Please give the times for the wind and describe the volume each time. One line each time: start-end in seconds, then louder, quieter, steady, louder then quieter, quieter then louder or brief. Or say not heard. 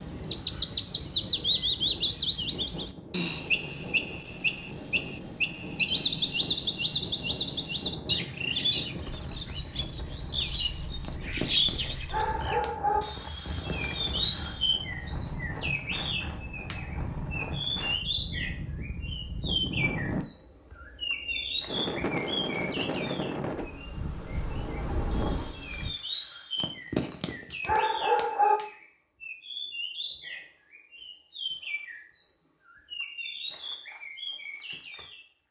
0.0-25.9 louder.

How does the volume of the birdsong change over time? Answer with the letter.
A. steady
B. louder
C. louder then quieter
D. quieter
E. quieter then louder
D.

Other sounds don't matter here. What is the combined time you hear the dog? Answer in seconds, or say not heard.
4 s.